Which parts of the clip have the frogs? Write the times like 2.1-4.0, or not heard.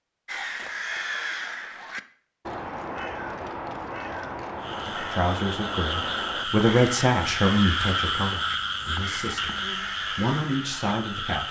4.5-11.4.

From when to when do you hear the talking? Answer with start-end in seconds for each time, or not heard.
5.0-11.4.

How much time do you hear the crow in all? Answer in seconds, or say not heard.
11 s.